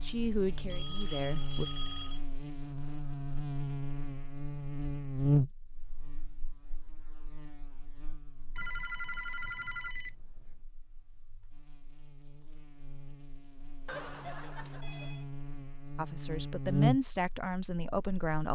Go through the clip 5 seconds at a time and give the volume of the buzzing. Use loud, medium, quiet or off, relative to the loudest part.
medium, loud, quiet, loud.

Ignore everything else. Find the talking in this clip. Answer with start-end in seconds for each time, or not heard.
0.0-1.6, 15.9-18.5.